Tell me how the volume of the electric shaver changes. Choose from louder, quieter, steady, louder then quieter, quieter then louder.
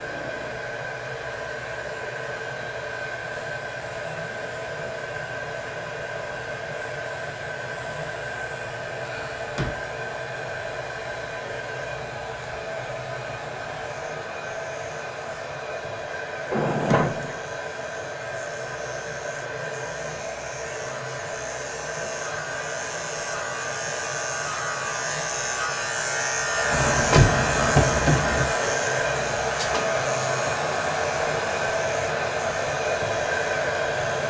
louder.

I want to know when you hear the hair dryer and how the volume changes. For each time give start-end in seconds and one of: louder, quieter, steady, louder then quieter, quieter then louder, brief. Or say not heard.
0.0-34.2 louder.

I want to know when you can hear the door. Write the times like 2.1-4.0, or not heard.
9.0-9.8, 16.5-17.4, 26.7-28.5.